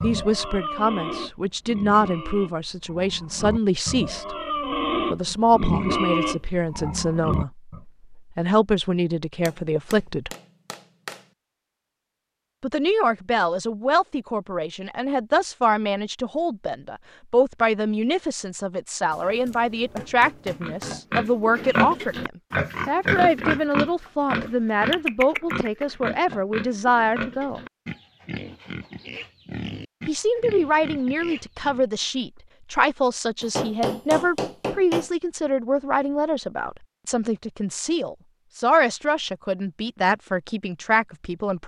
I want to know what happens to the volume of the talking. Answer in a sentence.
The loudness of the talking stays about the same.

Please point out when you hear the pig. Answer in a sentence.
The pig can be heard from 0.0 to 7.8 s and from 20.6 to 31.9 s.